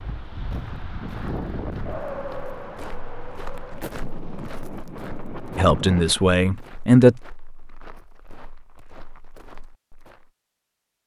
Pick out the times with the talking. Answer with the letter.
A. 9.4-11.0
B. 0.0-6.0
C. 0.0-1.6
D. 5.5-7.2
D.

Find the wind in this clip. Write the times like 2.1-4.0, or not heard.
0.0-6.0.